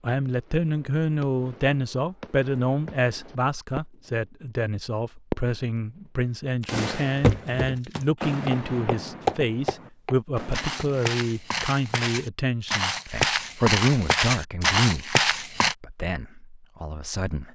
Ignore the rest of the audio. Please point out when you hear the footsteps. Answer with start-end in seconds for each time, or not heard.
7.2-15.8.